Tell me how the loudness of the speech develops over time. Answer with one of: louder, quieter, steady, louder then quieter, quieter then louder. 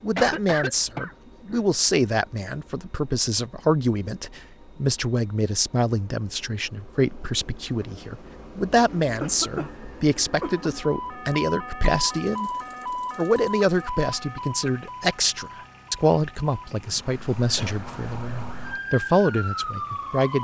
steady.